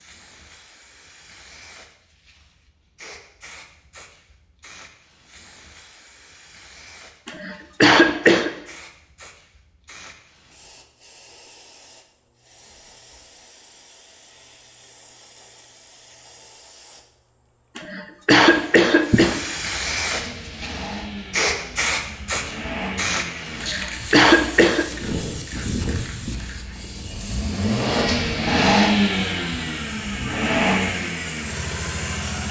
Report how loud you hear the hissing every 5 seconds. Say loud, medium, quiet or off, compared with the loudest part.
quiet, quiet, quiet, medium, loud, medium, medium.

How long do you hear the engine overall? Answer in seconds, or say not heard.
12 s.